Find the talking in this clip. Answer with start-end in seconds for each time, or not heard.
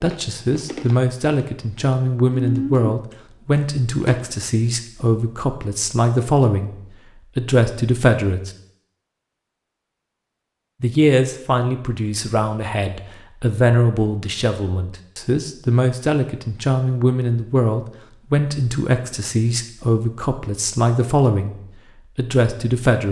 0.0-6.8, 7.3-8.5, 10.8-21.6, 22.1-23.0.